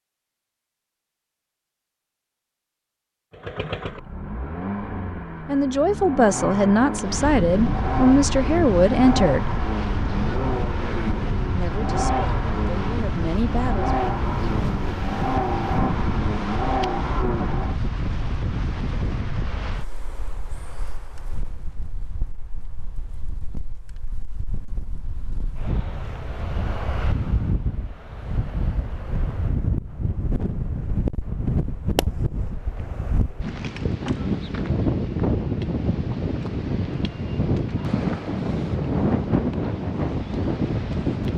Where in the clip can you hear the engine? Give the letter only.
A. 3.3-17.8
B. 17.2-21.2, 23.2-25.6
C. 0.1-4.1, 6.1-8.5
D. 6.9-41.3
A.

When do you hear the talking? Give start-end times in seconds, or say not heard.
5.5-9.5, 11.5-13.9.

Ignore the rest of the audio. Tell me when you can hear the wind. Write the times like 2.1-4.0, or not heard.
6.9-41.3.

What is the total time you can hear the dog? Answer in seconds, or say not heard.
not heard.